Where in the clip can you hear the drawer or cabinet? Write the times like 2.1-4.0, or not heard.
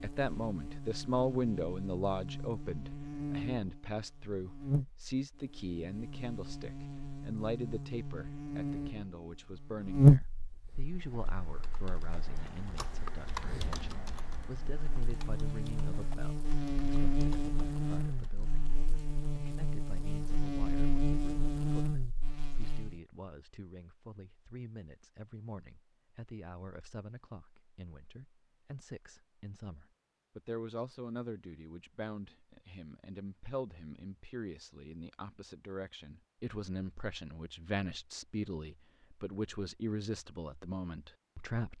not heard.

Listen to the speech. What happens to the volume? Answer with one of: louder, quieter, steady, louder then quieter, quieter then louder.
quieter then louder.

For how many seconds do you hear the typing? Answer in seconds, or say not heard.
8 s.